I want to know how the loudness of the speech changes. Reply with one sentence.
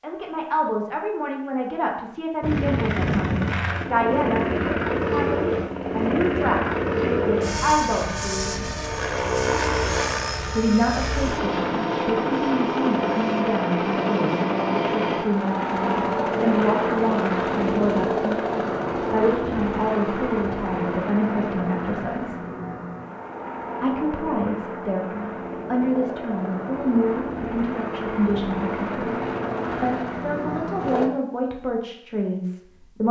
The volume of the speech stays about the same.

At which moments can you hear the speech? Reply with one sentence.
The speech can be heard from 0.0 to 8.7 s, from 10.6 to 22.4 s, from 23.8 to 29.1 s and from 29.8 to 33.0 s.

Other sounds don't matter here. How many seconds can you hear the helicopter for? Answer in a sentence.
The helicopter can be heard for 29 seconds in total.